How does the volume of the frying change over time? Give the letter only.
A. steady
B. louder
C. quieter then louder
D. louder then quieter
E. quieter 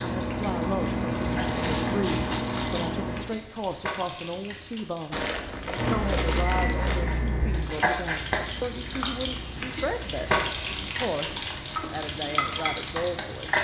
B.